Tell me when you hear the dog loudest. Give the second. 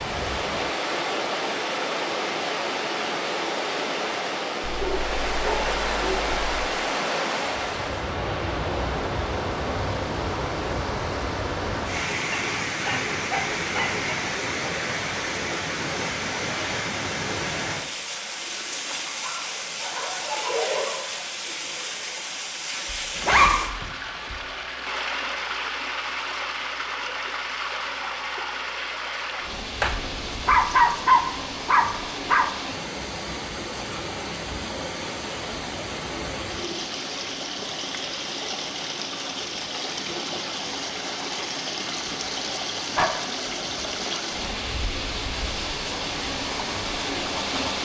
31 s.